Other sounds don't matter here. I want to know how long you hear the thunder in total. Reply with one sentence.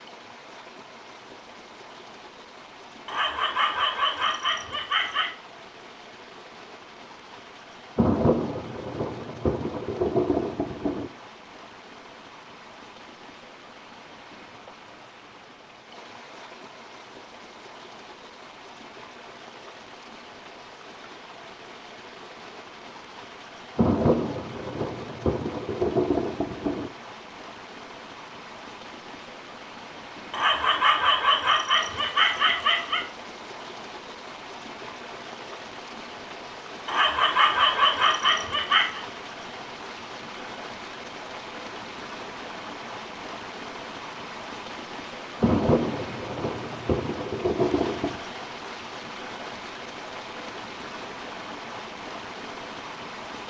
You can hear the thunder for 9 seconds altogether.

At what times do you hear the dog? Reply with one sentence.
The dog can be heard from 3.0 to 5.3 s, from 30.3 to 33.0 s and from 36.9 to 39.0 s.